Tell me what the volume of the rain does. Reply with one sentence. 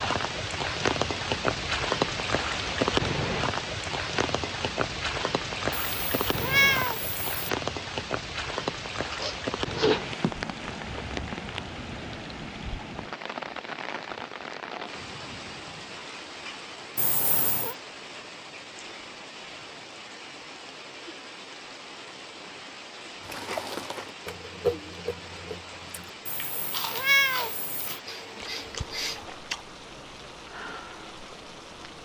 The volume of the rain goes down.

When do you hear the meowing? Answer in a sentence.
You can hear the meowing from 5.7 to 7.5 s, from 16.9 to 17.8 s and from 26.2 to 28.0 s.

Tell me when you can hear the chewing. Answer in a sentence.
The chewing can be heard from 23.2 to 29.6 s.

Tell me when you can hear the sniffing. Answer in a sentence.
The sniffing can be heard from 9.1 to 10.0 s and from 28.1 to 29.2 s.